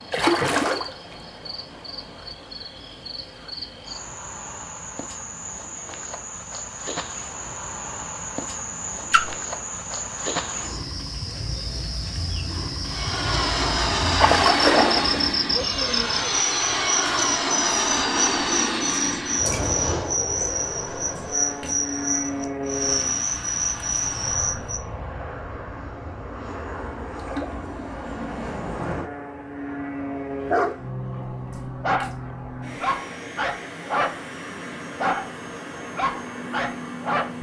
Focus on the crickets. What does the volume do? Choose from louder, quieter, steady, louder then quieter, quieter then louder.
louder.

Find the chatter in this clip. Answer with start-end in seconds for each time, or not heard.
not heard.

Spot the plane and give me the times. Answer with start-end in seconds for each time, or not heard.
12.8-37.3.